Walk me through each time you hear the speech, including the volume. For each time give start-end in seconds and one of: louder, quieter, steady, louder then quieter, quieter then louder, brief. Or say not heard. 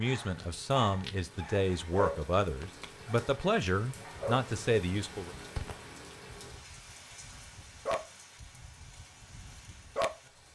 0.0-5.3 steady.